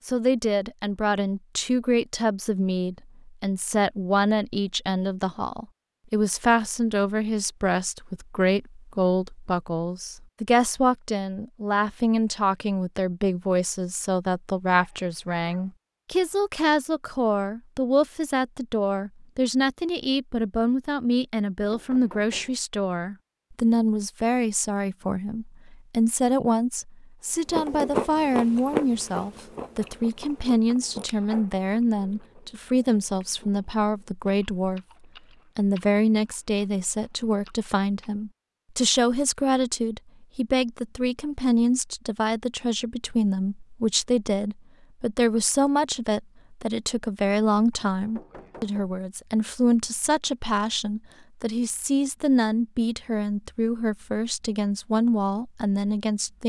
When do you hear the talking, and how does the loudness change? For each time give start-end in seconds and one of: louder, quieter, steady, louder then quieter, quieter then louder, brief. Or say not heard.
0.1-34.8 steady
35.5-56.4 steady.